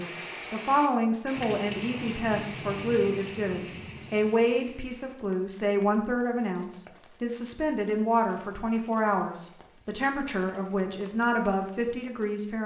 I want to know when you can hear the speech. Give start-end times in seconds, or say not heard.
0.0-12.6.